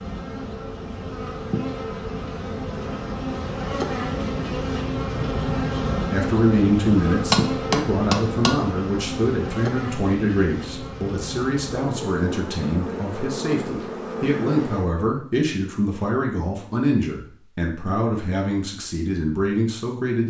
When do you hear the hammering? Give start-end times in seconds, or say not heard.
7.3-8.6.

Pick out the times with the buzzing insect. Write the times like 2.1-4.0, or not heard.
0.0-15.1.